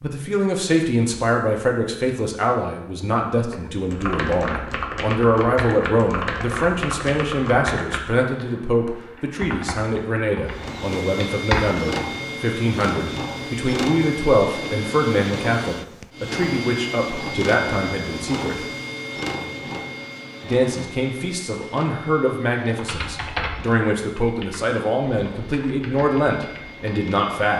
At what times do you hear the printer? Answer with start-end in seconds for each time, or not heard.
10.4-27.5.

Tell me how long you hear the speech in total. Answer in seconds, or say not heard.
26 s.